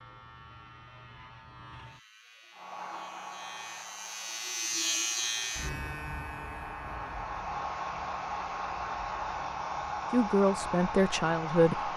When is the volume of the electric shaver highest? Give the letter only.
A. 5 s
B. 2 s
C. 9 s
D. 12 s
A.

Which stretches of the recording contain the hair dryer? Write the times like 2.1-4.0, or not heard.
2.5-11.9.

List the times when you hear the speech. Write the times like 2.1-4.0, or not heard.
10.1-11.9.